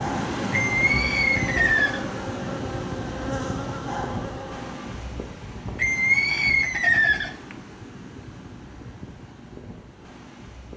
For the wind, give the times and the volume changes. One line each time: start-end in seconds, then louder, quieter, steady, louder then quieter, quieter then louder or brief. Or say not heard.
0.0-10.7 quieter.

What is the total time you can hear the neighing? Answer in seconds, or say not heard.
3 s.